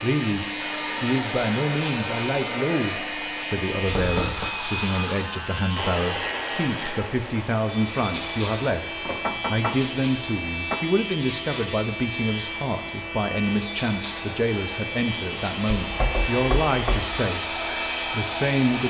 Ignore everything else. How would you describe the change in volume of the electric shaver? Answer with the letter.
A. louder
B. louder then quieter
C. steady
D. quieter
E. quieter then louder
C.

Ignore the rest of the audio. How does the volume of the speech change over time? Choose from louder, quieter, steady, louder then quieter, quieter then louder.
steady.